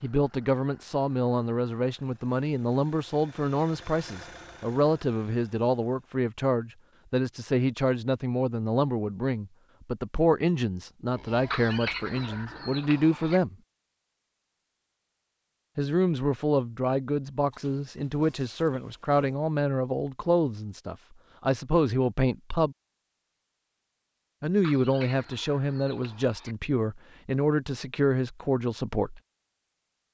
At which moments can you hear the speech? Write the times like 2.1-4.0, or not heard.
0.0-13.6, 15.8-22.8, 24.4-29.2.